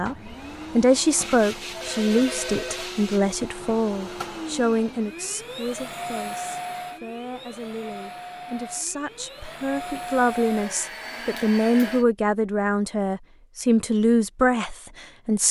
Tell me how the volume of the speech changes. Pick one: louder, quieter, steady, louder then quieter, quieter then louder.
quieter then louder.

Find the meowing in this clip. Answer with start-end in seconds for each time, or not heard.
not heard.